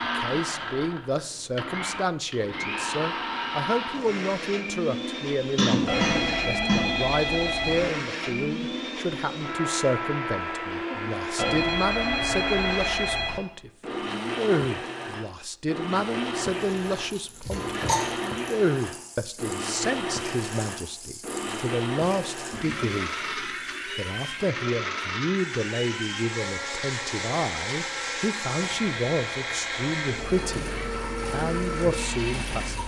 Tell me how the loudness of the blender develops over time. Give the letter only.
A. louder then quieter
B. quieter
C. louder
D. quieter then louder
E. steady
E.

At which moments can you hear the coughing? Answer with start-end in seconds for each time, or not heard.
5.5-6.8, 17.4-18.1.